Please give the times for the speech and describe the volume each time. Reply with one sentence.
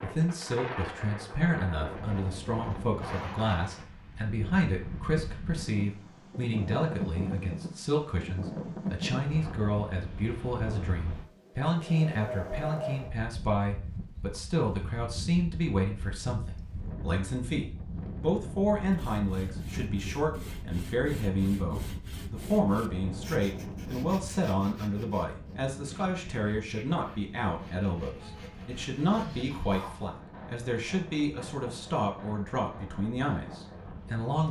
You can hear the speech from 0.0 to 34.4 s, at a steady volume.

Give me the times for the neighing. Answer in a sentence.
You can't hear the neighing here.